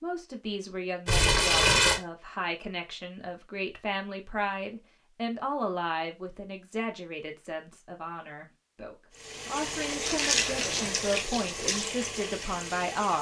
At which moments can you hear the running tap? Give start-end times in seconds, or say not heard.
9.2-13.1.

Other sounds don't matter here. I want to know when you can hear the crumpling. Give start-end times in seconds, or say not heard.
1.1-2.0, 10.1-10.8.